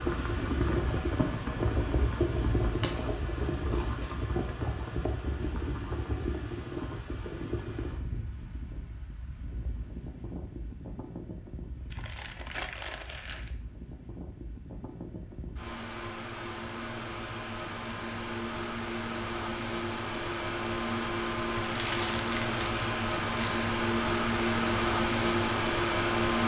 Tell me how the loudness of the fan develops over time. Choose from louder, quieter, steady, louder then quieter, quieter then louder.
quieter then louder.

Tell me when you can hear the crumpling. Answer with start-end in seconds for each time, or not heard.
2.7-4.2, 11.9-13.5, 21.6-23.6.